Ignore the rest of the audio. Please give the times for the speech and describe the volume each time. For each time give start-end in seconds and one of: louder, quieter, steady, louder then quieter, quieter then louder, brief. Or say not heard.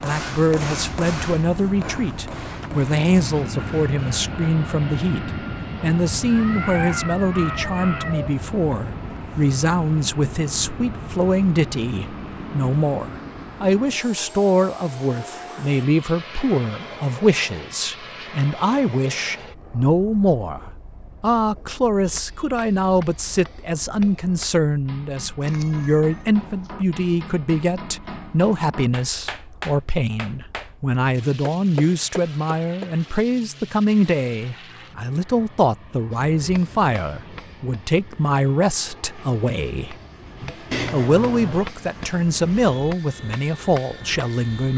0.0-44.7 steady.